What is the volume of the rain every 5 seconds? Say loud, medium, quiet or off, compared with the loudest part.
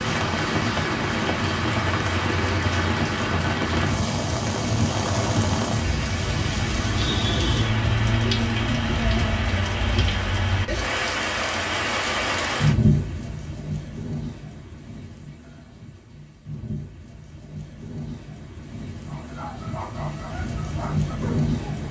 loud, loud, loud, quiet, loud.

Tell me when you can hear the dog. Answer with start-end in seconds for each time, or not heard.
19.1-21.8.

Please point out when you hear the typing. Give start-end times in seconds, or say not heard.
not heard.